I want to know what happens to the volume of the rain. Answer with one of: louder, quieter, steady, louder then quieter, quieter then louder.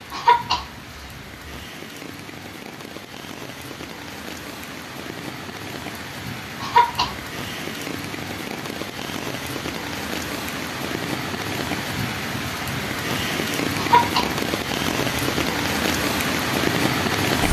louder.